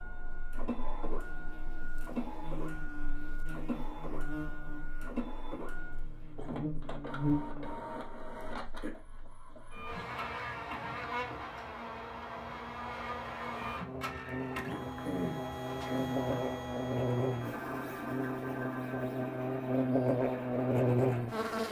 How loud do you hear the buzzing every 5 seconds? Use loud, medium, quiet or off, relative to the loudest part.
quiet, medium, medium, medium, loud.